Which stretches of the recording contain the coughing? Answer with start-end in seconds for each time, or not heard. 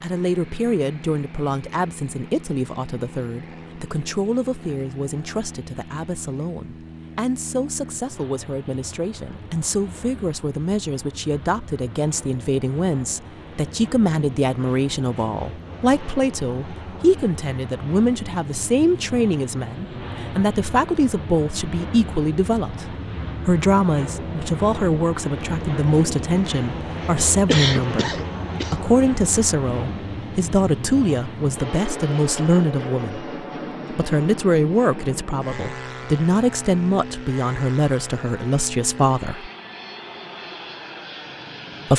27.4-28.8.